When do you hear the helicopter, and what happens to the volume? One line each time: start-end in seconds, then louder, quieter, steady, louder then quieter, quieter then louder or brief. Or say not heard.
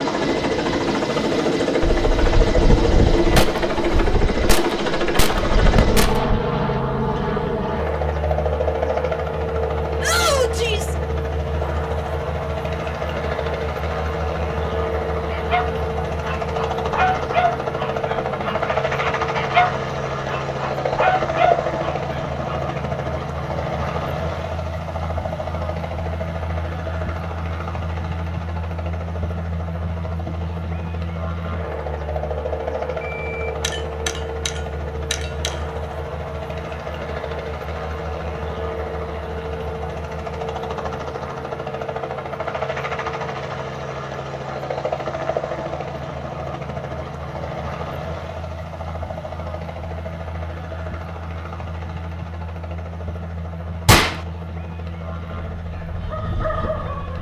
0.0-57.1 quieter.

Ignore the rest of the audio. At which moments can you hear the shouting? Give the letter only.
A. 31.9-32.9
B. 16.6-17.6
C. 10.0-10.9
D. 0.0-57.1
C.